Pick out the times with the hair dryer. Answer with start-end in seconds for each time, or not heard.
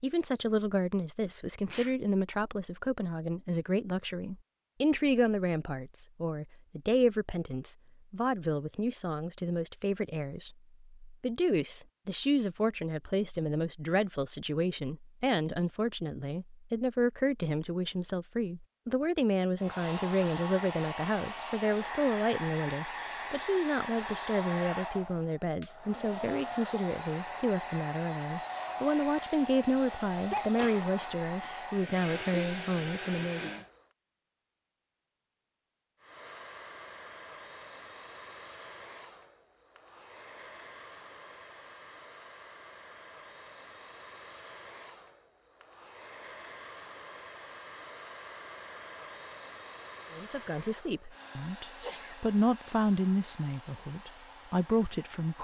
19.6-33.9, 36.0-55.3.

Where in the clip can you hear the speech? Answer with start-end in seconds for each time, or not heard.
0.0-33.5, 50.1-55.3.